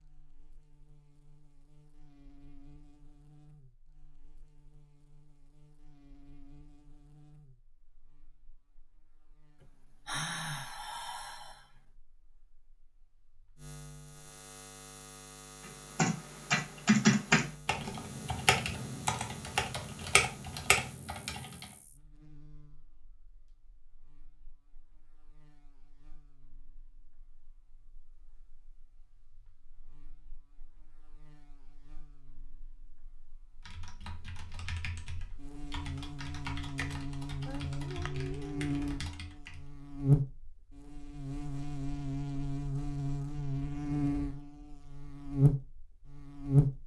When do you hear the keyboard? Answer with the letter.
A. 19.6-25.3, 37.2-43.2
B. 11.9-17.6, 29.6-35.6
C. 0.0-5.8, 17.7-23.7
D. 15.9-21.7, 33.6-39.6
D.